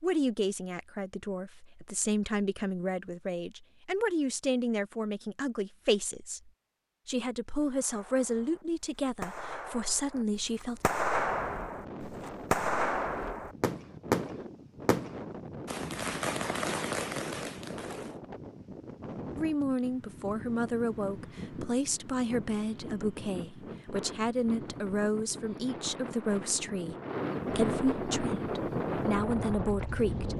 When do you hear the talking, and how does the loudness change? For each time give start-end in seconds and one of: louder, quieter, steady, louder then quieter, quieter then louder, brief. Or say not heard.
0.0-10.8 steady
19.4-30.3 steady.